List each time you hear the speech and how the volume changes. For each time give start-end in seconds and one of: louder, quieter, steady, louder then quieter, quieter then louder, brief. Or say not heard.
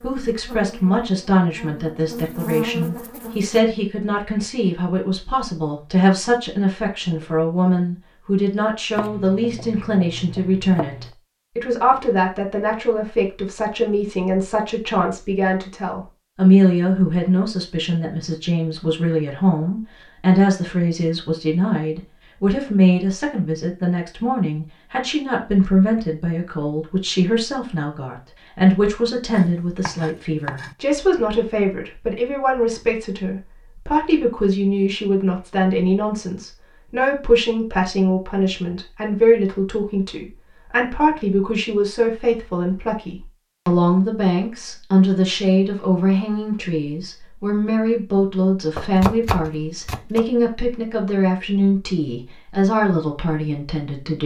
0.0-54.2 steady.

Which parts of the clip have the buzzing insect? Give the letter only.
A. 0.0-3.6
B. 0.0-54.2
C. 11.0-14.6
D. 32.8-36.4
A.